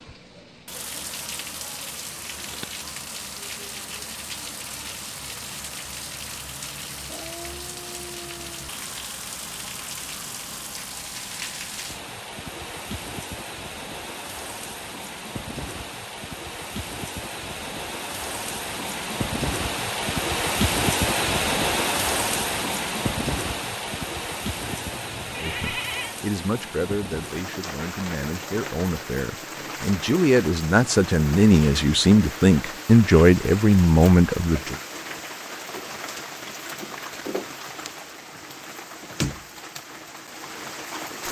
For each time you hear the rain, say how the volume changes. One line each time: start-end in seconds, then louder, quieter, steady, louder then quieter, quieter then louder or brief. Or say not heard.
0.0-41.2 louder then quieter.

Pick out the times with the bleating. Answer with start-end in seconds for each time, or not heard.
24.6-26.1.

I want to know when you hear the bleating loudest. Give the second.
26 s.